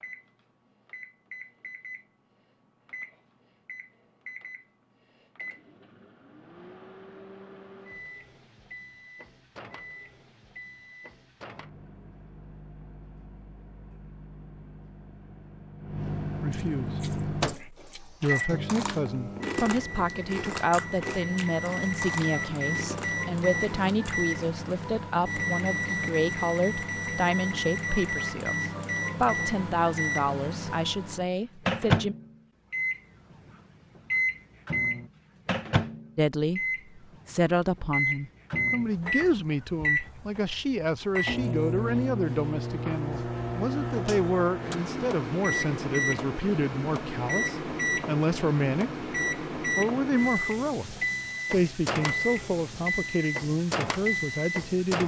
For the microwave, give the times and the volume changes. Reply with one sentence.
You can hear the microwave from 0.0 to 55.0 s, getting louder.